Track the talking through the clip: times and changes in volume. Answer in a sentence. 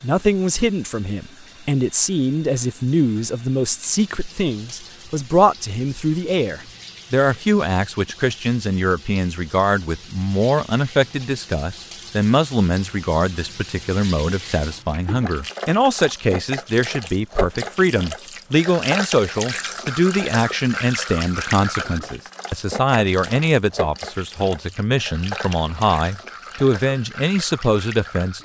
The talking can be heard from 0.0 to 28.4 s, at a steady volume.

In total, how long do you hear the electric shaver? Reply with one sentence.
You can't hear the electric shaver here.